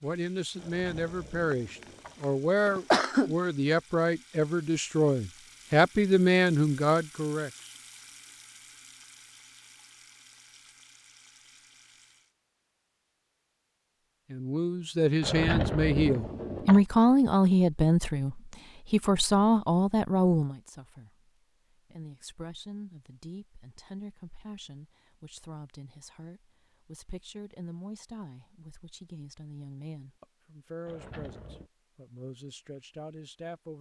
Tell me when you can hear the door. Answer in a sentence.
The door can be heard from 0.6 to 2.2 s, from 15.2 to 16.9 s and from 30.9 to 31.7 s.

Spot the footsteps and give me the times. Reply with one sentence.
You can't hear the footsteps here.